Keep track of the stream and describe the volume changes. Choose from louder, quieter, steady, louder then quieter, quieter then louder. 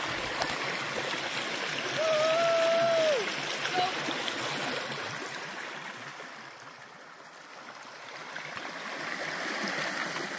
quieter then louder.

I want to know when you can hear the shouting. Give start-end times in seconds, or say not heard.
1.9-4.0.